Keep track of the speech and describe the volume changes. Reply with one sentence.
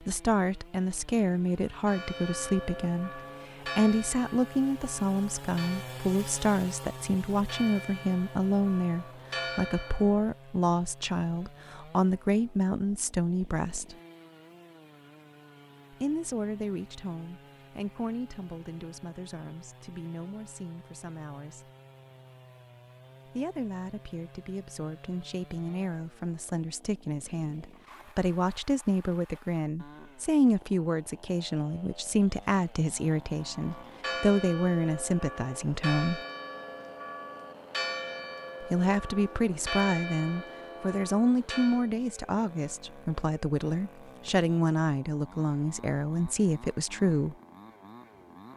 The volume of the speech goes down, then up.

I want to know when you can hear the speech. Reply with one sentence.
The speech can be heard from 0.0 to 13.9 s, from 15.9 to 21.7 s, from 23.2 to 36.2 s and from 38.6 to 47.4 s.